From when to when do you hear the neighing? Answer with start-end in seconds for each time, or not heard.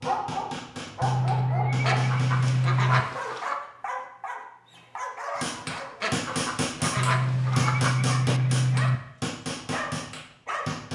1.0-3.0, 7.0-9.0.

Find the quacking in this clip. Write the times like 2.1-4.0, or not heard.
1.8-3.5, 6.0-8.0.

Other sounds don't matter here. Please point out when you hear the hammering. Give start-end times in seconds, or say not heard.
0.0-2.7, 5.3-10.9.